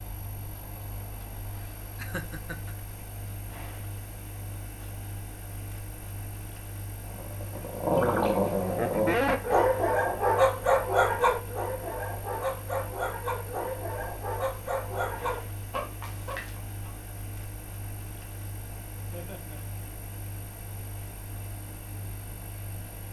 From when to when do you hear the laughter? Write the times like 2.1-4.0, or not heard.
2.0-2.7, 8.8-9.7, 19.1-19.6.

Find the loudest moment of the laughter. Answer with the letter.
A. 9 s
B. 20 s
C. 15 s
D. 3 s
A.